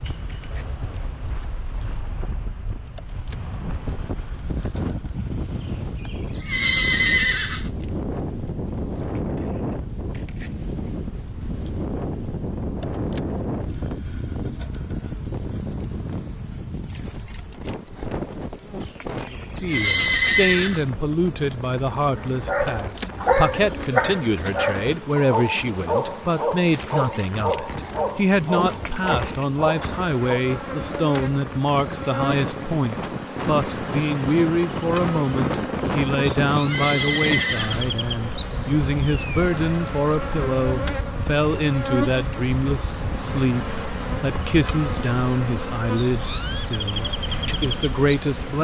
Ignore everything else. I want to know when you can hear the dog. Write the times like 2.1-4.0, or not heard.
22.1-30.4.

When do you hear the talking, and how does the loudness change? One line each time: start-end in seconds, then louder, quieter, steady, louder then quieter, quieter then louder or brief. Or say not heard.
19.3-48.5 steady.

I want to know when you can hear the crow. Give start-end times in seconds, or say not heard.
not heard.